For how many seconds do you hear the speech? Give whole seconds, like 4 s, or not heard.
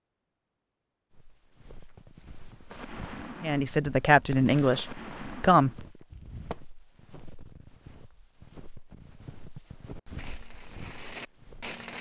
2 s.